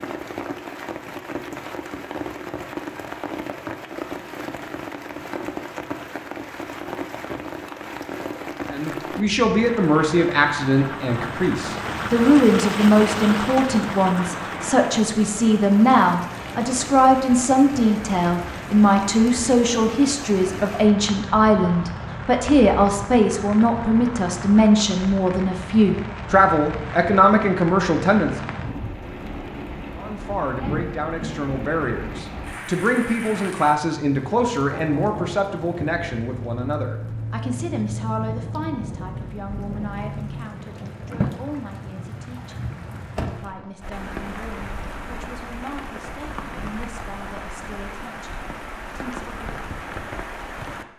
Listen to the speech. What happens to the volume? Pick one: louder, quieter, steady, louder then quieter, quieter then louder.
quieter.